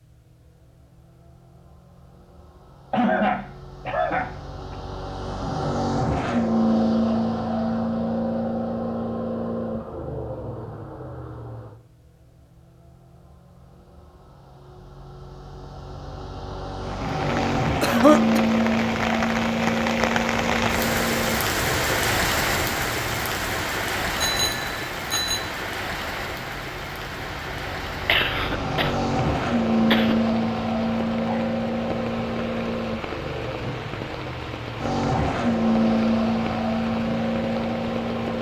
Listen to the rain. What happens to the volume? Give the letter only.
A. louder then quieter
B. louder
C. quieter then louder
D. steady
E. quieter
E.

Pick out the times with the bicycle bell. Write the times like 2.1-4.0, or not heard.
24.1-25.4.